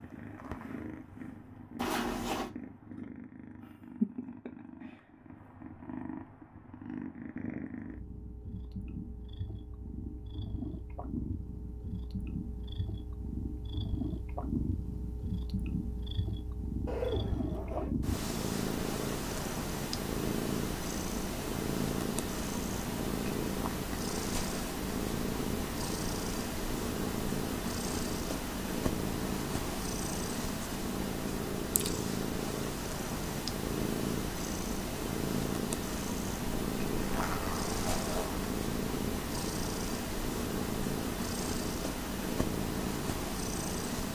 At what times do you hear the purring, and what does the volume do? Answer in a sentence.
You can hear the purring from 0.0 to 44.1 s, getting louder.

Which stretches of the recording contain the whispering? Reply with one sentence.
You can't hear the whispering here.